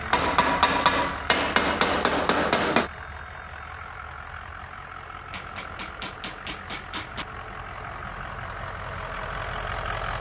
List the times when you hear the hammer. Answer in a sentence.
You can hear the hammer from 0.1 to 2.9 s and from 5.3 to 7.2 s.